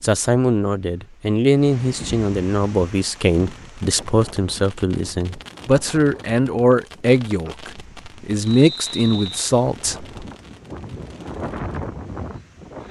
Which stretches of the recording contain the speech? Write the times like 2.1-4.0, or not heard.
0.0-10.1.